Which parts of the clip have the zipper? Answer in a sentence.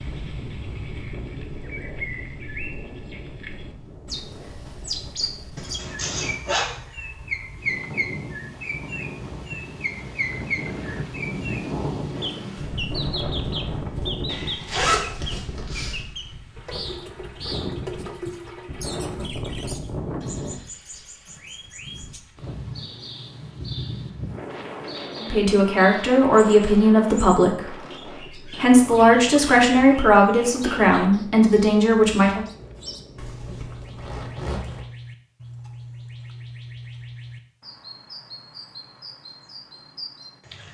The zipper can be heard from 5.5 to 6.7 s, from 14.2 to 15.9 s and from 33.1 to 34.9 s.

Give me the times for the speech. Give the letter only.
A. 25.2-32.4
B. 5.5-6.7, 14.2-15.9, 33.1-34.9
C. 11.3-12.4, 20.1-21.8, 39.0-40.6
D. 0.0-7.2
A.